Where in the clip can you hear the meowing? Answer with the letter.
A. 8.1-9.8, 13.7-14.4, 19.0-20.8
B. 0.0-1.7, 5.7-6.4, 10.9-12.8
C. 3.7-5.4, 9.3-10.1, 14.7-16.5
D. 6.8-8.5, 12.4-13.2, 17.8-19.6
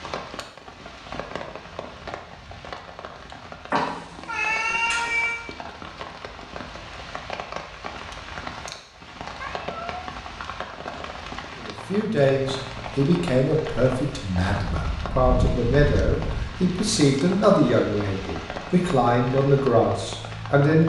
C.